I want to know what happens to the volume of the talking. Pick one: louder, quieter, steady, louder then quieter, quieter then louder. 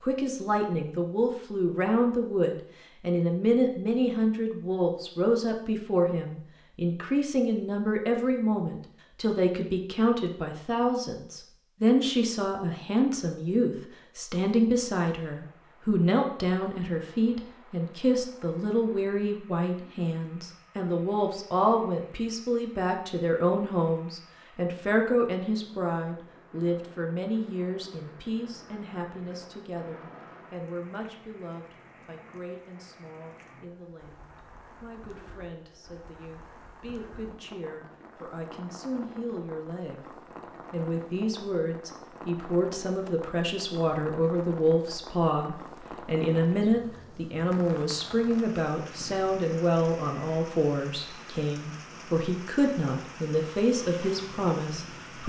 quieter then louder.